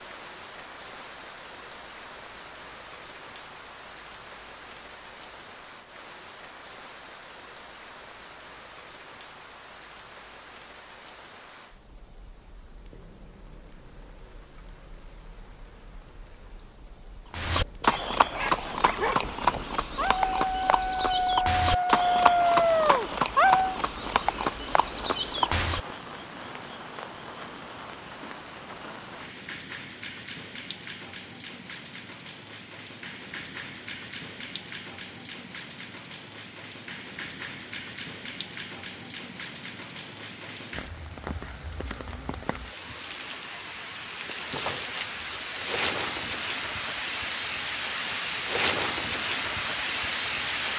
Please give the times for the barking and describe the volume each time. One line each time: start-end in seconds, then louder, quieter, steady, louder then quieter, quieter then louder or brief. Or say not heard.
17.6-23.8 louder.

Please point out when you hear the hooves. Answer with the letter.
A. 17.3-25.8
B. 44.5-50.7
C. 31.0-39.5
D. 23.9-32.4
A.